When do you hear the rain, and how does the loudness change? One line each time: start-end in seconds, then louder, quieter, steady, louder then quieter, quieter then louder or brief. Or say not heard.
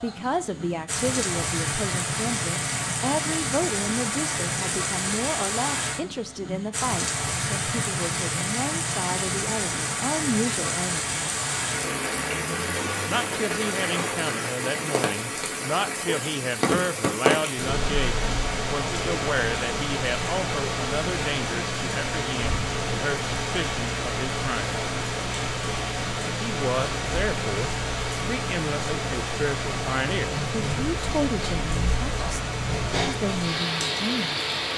0.0-34.7 steady.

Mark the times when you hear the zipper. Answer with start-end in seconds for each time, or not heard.
not heard.